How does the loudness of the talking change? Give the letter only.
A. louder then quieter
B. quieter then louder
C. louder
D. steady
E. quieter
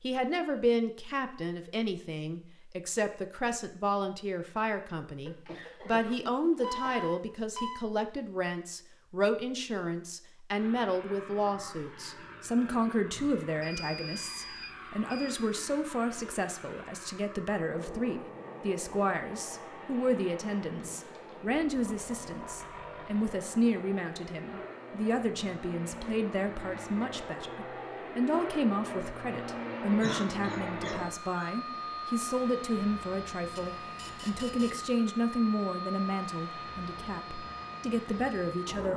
D.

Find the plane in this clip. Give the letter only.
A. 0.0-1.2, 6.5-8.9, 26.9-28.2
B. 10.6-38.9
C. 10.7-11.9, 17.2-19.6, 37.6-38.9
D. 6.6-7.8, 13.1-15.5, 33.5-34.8
B.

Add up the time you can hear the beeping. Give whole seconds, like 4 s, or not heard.
5 s.